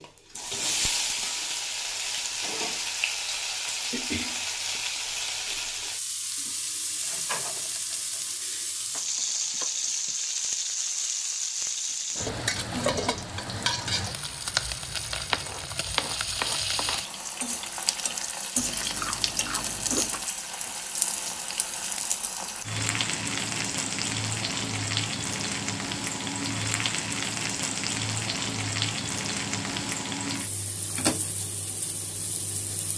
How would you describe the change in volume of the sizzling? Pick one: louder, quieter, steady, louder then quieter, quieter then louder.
steady.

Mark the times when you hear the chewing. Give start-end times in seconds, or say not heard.
18.6-20.2.